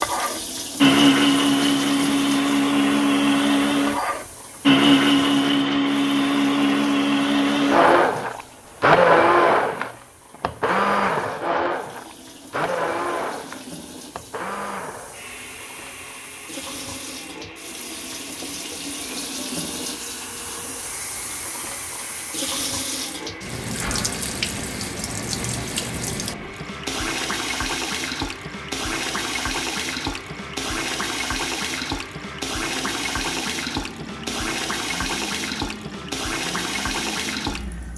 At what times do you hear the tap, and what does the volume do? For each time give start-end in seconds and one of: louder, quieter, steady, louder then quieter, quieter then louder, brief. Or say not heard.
0.0-37.9 quieter then louder.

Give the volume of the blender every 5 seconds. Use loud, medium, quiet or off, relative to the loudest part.
loud, loud, medium, quiet, quiet, quiet, quiet, quiet.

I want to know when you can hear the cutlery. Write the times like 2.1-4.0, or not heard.
not heard.